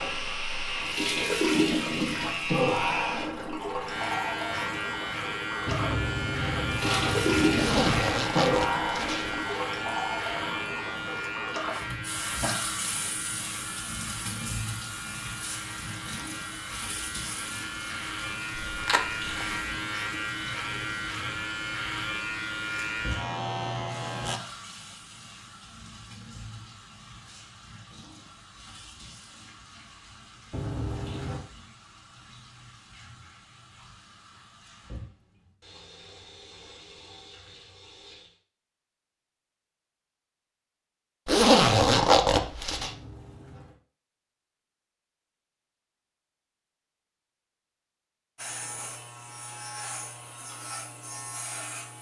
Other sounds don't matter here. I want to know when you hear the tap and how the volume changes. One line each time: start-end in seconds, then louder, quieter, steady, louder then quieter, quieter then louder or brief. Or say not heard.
0.0-38.4 quieter.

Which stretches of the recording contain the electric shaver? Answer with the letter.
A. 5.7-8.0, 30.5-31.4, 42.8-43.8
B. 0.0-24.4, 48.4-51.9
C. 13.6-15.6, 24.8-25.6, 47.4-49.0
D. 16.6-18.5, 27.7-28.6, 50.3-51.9
B.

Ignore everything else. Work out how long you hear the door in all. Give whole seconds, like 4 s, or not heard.
4 s.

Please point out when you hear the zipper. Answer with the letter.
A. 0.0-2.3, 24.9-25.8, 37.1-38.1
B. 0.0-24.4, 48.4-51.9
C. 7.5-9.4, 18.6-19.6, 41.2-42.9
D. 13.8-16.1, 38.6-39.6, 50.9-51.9
C.